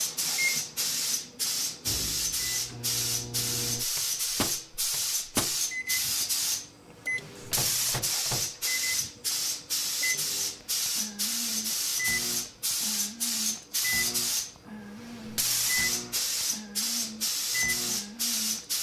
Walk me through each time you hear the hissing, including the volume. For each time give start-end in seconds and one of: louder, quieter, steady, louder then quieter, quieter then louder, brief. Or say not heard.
0.0-18.7 steady.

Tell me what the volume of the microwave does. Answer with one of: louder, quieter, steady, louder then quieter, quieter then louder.
steady.